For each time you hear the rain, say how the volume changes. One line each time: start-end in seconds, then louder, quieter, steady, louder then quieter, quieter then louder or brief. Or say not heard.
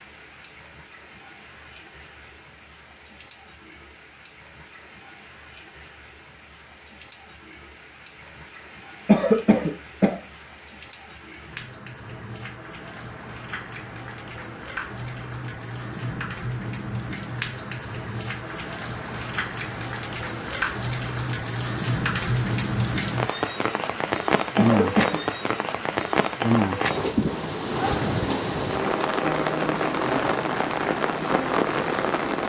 0.0-32.4 louder.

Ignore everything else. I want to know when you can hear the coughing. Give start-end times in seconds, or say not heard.
9.1-10.2, 24.6-25.6.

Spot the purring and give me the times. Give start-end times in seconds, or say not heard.
not heard.